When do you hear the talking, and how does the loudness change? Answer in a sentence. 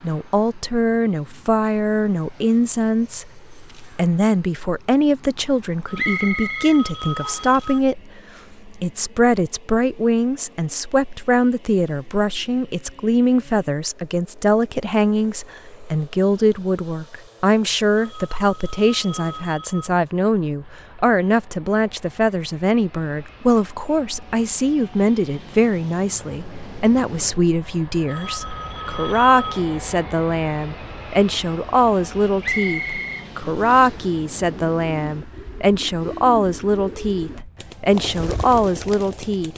The talking can be heard from 0.0 to 39.5 s, at a steady volume.